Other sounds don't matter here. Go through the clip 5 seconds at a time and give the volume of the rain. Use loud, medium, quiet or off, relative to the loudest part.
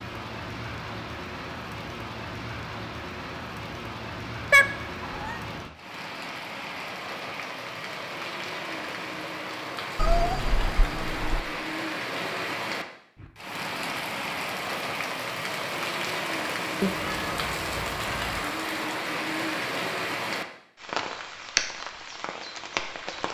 medium, medium, loud, loud, loud.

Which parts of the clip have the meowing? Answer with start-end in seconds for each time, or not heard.
4.5-5.4, 9.9-11.4, 16.8-18.4.